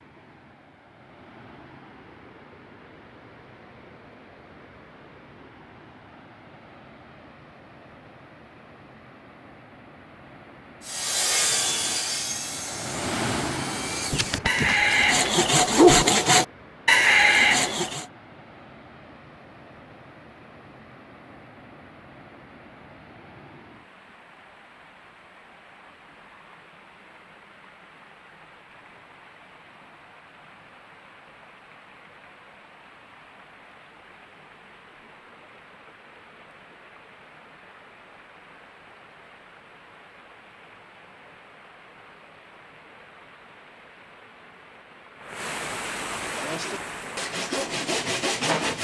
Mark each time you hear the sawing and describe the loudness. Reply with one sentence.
The sawing can be heard from 10.8 to 18.1 s, getting quieter then louder; and briefly from 46.2 to 48.7 s.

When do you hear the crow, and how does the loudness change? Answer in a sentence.
The crow can't be heard in this clip.